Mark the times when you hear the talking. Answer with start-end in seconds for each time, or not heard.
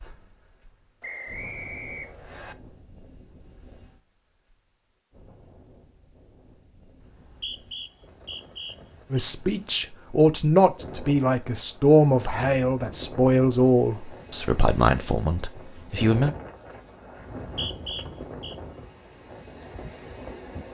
9.1-16.4.